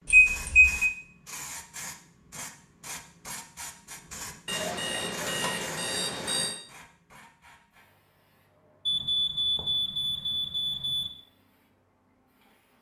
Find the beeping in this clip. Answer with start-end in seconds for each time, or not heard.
0.1-0.9, 4.5-6.5, 8.8-11.1.